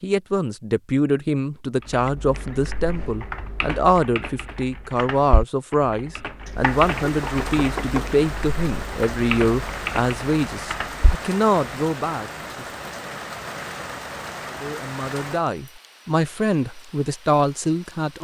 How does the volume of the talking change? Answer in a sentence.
The loudness of the talking stays about the same.